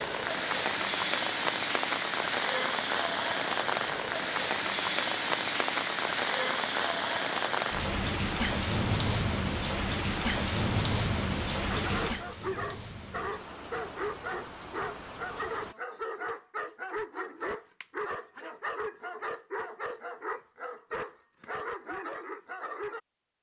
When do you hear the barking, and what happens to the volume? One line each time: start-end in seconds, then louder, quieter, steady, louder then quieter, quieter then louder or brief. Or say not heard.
11.7-23.0 steady.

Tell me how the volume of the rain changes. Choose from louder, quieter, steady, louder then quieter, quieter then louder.
quieter.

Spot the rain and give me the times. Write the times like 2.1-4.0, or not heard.
0.0-15.8.